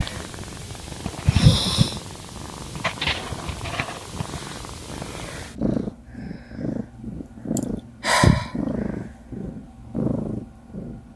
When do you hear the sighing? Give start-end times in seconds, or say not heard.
1.2-2.0, 7.5-8.5.